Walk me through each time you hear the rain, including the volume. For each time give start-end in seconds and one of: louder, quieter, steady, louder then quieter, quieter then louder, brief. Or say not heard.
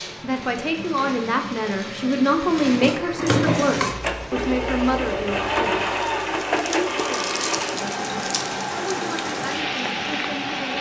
3.8-10.7 louder.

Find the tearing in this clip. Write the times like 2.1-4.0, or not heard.
6.5-8.5.